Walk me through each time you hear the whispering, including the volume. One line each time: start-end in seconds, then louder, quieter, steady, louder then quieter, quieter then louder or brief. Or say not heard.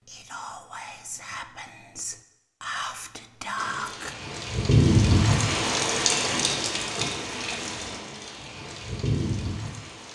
0.0-4.2 louder.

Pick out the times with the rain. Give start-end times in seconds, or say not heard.
3.5-10.1.